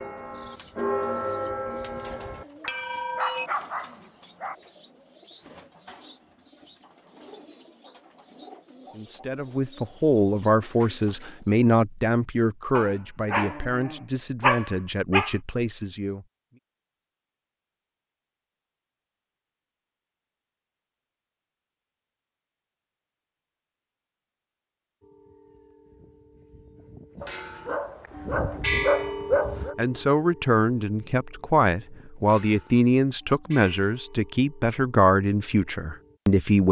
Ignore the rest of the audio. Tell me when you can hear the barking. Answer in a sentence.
The barking can be heard from 2.6 to 4.5 s, from 12.8 to 15.3 s and from 27.2 to 29.8 s.